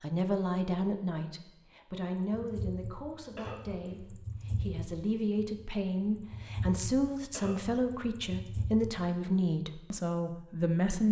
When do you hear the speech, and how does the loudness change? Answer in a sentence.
The speech can be heard from 0.0 to 11.0 s, getting quieter then louder.